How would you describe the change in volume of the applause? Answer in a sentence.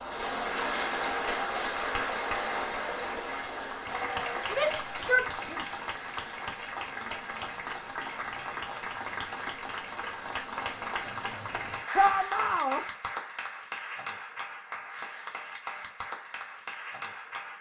The loudness of the applause goes down.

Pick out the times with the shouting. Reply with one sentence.
You can hear the shouting from 4.5 to 5.7 s and from 11.9 to 12.8 s.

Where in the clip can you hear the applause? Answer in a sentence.
The applause can be heard from 0.0 to 17.5 s.